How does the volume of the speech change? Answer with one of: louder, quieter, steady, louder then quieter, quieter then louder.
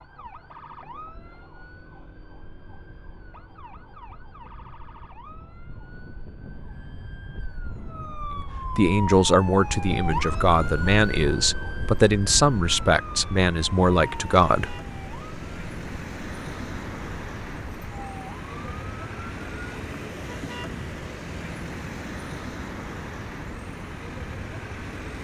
steady.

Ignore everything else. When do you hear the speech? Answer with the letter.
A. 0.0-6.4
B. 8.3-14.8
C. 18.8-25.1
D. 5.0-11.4
B.